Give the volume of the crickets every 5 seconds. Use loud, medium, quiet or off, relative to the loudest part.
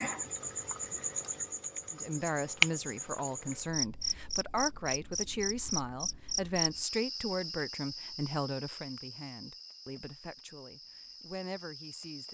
loud, medium, quiet.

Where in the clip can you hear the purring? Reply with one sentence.
You can't hear the purring here.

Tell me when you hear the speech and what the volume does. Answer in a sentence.
The speech can be heard from 1.9 to 12.2 s, getting quieter.